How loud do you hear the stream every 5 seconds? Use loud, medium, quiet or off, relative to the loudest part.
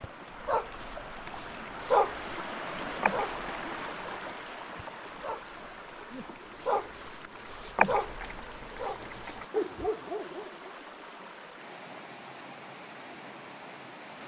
loud, medium, medium.